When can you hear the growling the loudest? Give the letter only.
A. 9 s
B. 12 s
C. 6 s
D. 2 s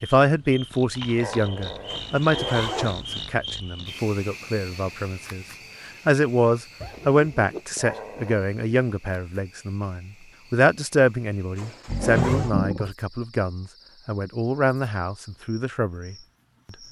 B.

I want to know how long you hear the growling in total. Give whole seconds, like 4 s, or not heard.
4 s.